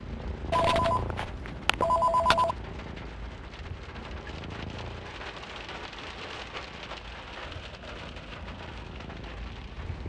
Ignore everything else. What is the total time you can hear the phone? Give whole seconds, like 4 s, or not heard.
2 s.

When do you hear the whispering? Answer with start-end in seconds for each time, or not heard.
not heard.